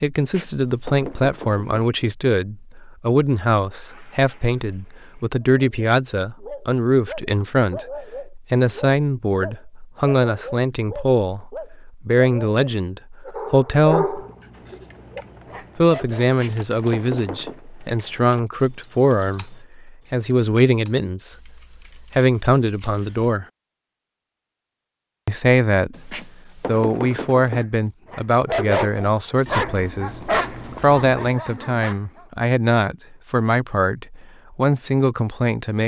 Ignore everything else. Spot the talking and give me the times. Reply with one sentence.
The talking can be heard from 0.0 to 14.2 s, from 15.8 to 23.4 s and from 25.2 to 35.8 s.